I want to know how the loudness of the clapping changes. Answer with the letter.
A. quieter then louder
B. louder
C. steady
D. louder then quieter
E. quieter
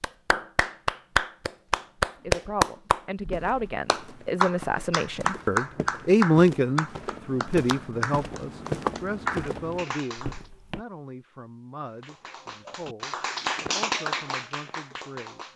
E.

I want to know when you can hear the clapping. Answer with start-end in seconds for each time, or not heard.
0.0-10.4, 12.0-15.5.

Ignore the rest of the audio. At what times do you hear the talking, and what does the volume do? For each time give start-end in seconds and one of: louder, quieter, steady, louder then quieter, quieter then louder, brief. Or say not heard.
2.2-15.4 louder then quieter.